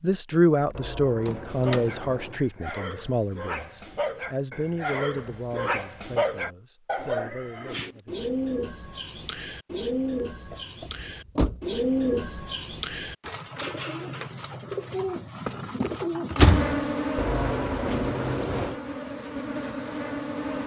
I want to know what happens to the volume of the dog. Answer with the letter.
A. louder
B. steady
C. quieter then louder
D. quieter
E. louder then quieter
A.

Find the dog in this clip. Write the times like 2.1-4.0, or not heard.
1.3-7.3.